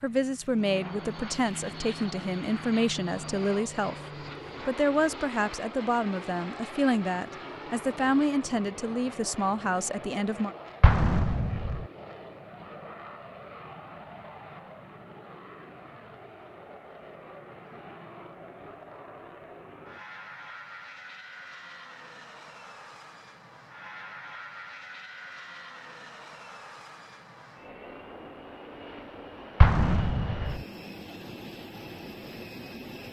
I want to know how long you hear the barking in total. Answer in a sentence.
The barking can't be heard in this clip.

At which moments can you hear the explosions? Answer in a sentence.
You can hear the explosions from 10.8 to 11.8 s and from 29.6 to 30.6 s.